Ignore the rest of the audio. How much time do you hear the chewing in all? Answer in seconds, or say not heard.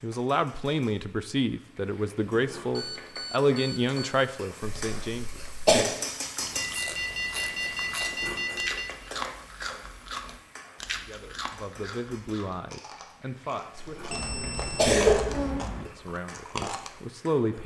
11 s.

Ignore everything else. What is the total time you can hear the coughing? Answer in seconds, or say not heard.
3 s.